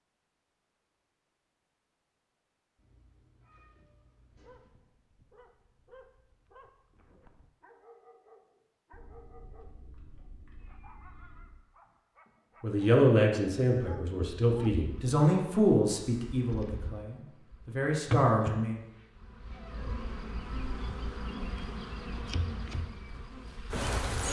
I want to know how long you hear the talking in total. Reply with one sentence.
You can hear the talking for 6 seconds altogether.